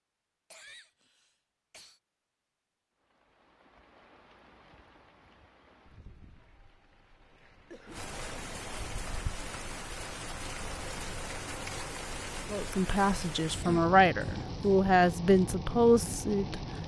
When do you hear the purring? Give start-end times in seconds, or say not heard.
not heard.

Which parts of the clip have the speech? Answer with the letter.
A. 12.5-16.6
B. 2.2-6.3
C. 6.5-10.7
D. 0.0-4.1
A.